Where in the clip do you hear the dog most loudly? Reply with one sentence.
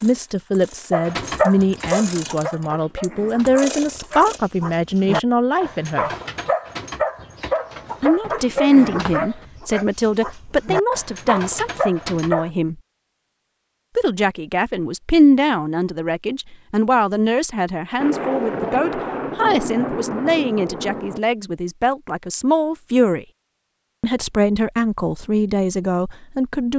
The volume of the dog peaks at 1 second.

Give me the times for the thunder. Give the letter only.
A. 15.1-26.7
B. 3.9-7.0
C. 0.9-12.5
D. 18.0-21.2
D.